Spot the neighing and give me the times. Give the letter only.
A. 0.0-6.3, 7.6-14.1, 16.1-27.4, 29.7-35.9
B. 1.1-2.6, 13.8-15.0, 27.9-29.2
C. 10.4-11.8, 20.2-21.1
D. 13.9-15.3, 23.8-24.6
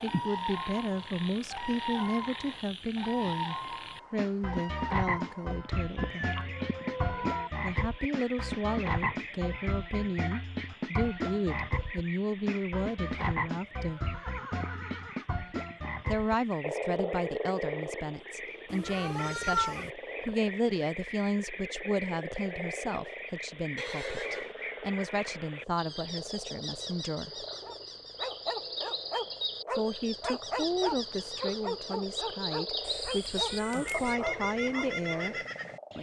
D.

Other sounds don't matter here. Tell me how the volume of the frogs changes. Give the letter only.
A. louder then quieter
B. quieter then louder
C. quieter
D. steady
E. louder
C.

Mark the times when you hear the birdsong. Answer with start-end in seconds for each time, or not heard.
0.0-35.9.